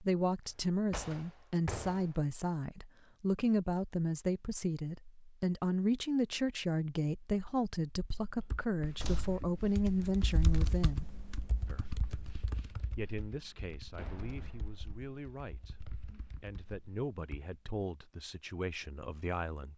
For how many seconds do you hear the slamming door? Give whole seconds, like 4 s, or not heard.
3 s.